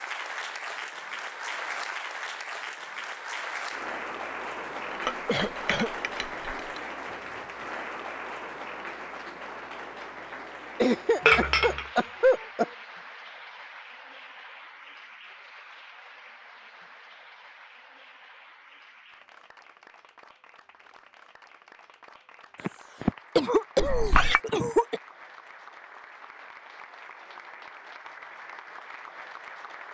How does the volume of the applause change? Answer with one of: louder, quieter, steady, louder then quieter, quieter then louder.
quieter then louder.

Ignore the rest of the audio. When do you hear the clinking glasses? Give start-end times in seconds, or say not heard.
4.9-6.8, 11.2-11.8, 23.8-24.4.